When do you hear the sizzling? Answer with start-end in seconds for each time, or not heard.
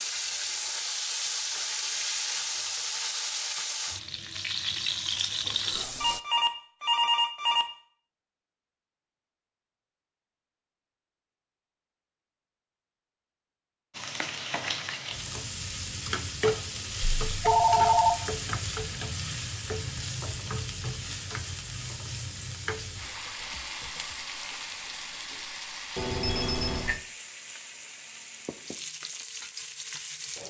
0.0-6.2, 13.9-30.4.